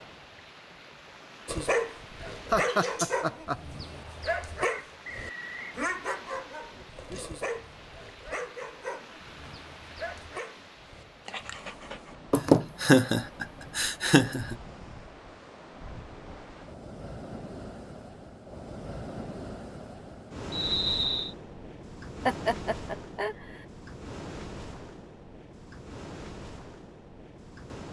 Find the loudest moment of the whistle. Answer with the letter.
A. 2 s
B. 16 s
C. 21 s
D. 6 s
C.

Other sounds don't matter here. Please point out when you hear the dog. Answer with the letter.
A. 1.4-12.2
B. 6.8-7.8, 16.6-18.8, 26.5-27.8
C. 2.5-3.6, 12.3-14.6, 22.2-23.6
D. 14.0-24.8
A.